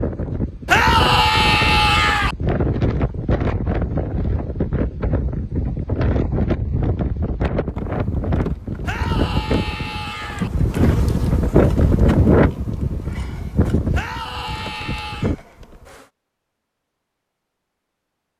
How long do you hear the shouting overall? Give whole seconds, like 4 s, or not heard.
5 s.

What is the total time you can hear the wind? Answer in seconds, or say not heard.
15 s.